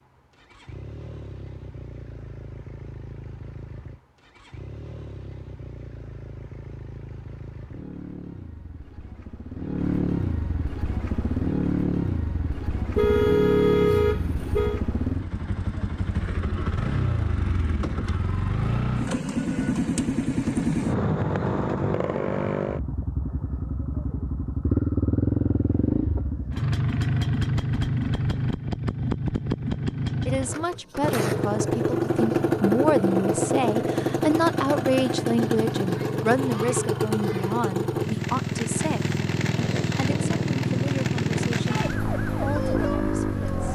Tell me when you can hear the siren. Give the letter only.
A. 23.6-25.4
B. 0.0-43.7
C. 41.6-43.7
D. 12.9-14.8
C.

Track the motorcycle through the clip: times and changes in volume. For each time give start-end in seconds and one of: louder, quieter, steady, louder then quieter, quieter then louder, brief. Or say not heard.
0.0-43.7 louder.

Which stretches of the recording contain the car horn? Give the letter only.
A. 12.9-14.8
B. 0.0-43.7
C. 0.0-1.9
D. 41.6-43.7
A.